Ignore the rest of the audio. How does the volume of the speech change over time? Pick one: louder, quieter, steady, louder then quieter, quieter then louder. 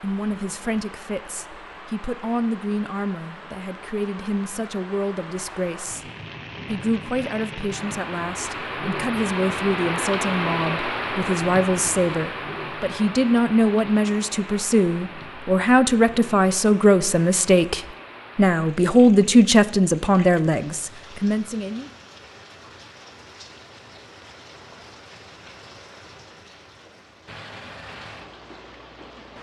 louder.